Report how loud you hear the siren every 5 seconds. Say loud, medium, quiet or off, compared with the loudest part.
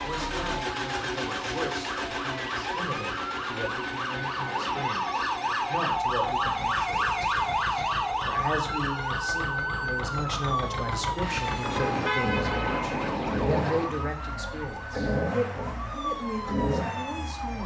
medium, loud, medium, medium.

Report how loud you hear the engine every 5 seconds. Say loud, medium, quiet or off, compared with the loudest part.
loud, medium, loud, loud.